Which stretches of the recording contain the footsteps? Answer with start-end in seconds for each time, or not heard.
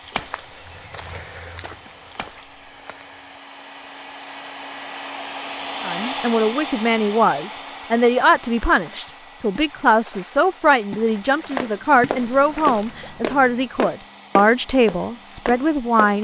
0.0-3.4, 11.2-16.1.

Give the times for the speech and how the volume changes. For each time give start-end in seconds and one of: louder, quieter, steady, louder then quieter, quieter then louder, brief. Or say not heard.
5.8-16.1 steady.